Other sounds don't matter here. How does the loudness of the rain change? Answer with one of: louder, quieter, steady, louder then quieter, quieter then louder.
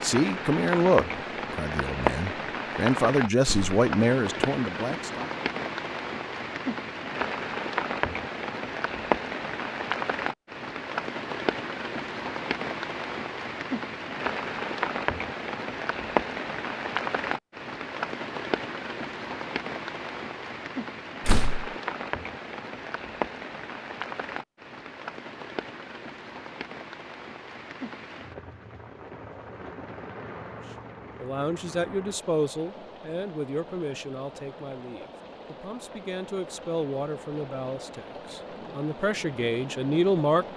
quieter.